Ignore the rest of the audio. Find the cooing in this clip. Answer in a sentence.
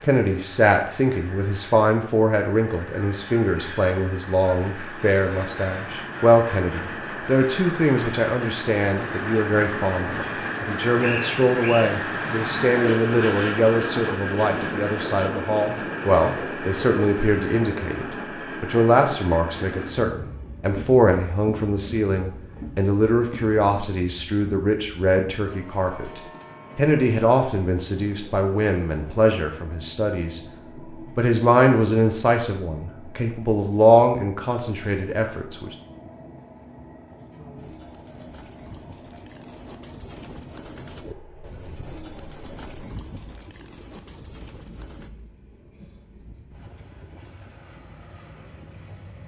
The cooing can be heard from 37.5 to 45.1 s.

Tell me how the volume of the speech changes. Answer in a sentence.
The loudness of the speech stays about the same.